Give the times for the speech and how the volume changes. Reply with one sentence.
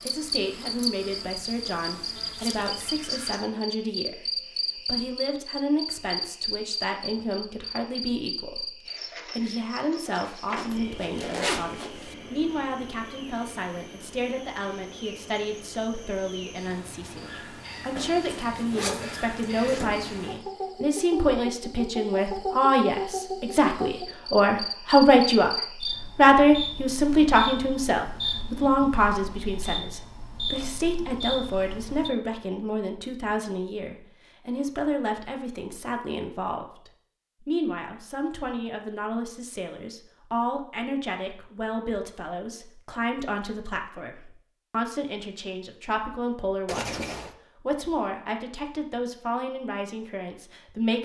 You can hear the speech from 0.1 to 51.0 s, getting louder then quieter.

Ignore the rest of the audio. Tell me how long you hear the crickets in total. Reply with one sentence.
The crickets can be heard for 32 seconds in total.